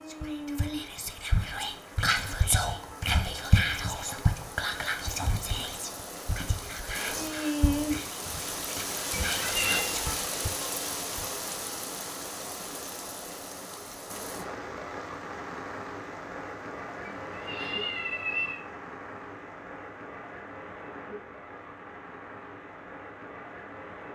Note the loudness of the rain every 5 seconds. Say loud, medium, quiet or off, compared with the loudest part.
medium, loud, loud, medium, medium.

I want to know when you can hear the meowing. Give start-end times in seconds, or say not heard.
9.1-9.8, 17.1-18.6.